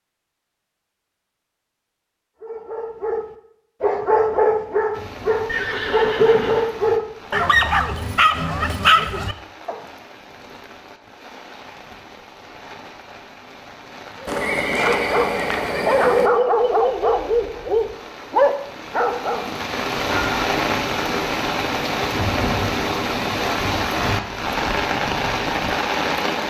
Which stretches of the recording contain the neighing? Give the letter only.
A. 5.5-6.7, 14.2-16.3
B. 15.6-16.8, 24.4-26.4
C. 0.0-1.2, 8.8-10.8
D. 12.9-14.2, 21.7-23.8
A.